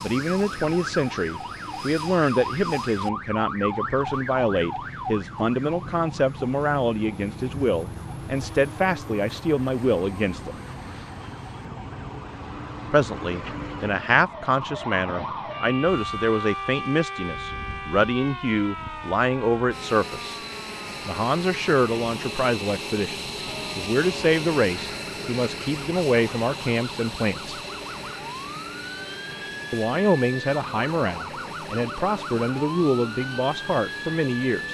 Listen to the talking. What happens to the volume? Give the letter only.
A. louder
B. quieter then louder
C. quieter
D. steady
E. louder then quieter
D.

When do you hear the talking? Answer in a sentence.
The talking can be heard from 0.0 to 10.6 s, from 12.9 to 20.4 s, from 21.1 to 27.6 s and from 29.7 to 34.6 s.